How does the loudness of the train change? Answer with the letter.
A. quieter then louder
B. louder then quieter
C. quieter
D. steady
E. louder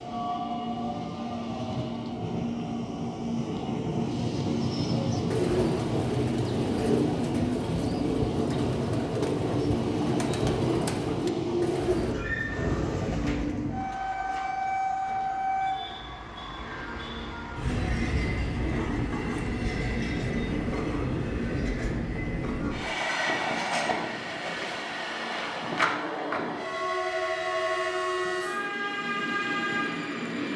D.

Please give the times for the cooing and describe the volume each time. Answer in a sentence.
You can hear the cooing from 4.5 to 12.2 s, at a steady volume.